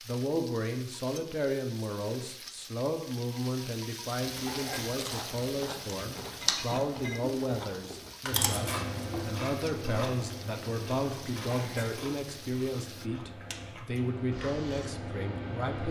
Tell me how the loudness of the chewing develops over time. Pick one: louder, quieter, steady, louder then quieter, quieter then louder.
quieter.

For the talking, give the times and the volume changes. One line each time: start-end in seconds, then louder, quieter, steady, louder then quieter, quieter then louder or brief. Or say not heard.
0.0-15.8 steady.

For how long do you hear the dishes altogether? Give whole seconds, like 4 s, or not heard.
2 s.